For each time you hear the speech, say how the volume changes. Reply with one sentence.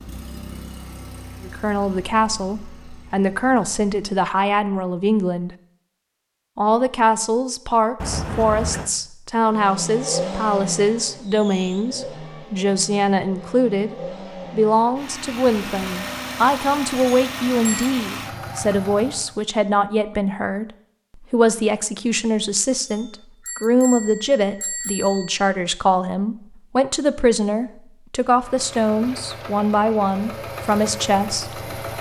You can hear the speech from 1.4 to 5.5 s, getting quieter then louder; and from 6.5 to 31.6 s, at a steady volume.